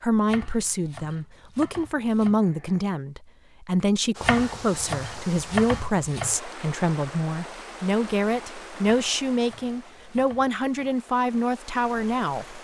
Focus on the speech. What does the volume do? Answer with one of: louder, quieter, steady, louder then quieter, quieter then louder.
steady.